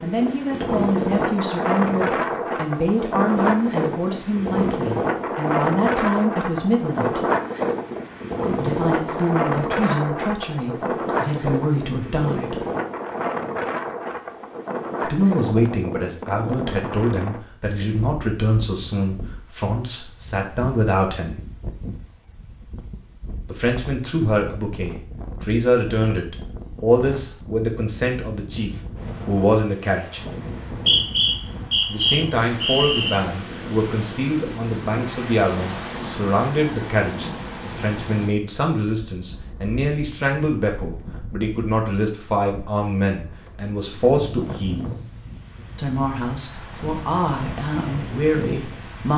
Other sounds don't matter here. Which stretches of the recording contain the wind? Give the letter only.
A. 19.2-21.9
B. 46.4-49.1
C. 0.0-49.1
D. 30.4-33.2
C.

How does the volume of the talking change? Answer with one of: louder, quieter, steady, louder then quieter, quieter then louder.
steady.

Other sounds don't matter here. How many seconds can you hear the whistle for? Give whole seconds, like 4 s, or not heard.
3 s.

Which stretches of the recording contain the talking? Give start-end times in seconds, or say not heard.
0.0-7.2, 8.6-12.6, 15.0-21.4, 23.4-30.2, 31.9-44.9, 45.8-49.1.